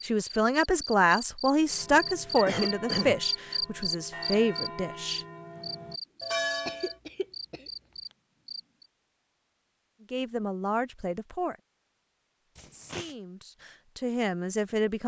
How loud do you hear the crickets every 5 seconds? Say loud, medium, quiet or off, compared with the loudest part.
loud, medium, off.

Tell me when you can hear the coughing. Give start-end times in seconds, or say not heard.
2.5-3.2, 6.7-7.7, 12.6-13.2.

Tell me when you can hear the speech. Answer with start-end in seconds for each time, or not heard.
0.0-5.2, 10.1-11.6, 12.7-15.0.